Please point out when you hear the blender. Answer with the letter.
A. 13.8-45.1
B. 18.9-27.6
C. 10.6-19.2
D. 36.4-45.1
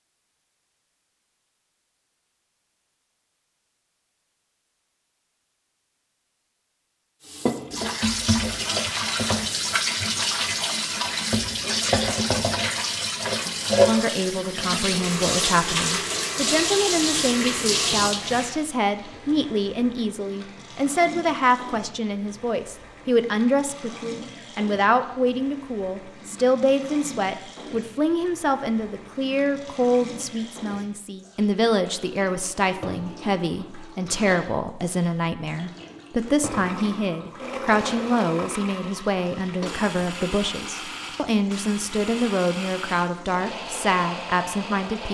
D.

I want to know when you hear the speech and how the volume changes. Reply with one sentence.
The speech can be heard from 13.8 to 45.1 s, at a steady volume.